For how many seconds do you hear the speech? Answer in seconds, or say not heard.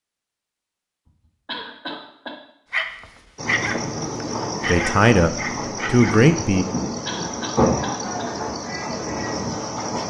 2 s.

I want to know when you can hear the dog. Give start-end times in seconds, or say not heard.
2.7-6.2.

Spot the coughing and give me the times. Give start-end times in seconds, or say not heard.
1.4-2.4, 7.0-8.3.